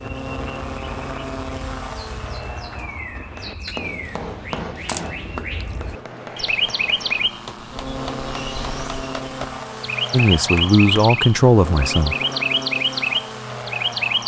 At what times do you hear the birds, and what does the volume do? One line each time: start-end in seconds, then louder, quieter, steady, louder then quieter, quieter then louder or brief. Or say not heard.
0.0-14.2 louder.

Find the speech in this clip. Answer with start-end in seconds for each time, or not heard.
10.1-12.2.